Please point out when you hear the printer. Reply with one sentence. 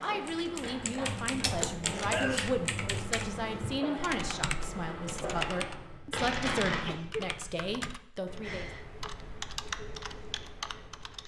The printer can be heard from 0.0 to 6.0 s.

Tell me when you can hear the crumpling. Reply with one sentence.
The crumpling can be heard from 6.1 to 6.8 s.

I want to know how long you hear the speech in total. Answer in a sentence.
You can hear the speech for 9 seconds altogether.